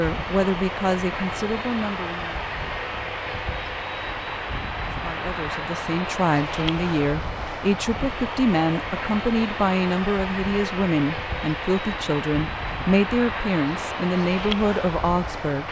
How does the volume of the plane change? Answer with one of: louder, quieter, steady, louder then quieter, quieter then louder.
steady.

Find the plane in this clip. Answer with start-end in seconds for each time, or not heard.
0.0-15.6.